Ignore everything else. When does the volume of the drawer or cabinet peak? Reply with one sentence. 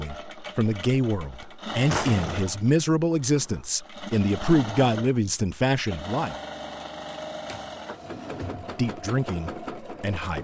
The volume of the drawer or cabinet peaks at 2 seconds.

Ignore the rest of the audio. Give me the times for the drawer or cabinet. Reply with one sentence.
The drawer or cabinet can be heard from 1.9 to 2.5 s and from 7.5 to 8.8 s.